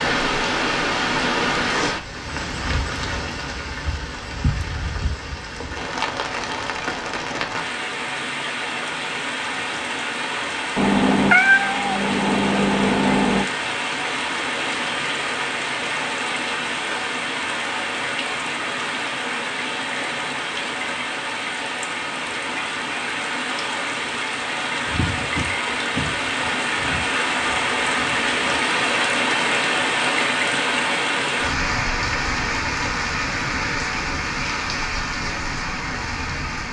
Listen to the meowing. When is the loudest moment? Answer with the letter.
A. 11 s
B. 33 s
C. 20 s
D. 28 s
A.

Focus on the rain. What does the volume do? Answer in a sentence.
The volume of the rain stays about the same.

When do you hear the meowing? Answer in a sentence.
You can hear the meowing from 10.8 to 13.4 s.